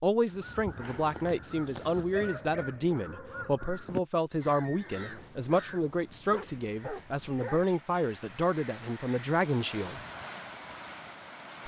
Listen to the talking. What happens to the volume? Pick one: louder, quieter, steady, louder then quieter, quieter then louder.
steady.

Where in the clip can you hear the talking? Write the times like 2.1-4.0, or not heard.
0.0-10.0.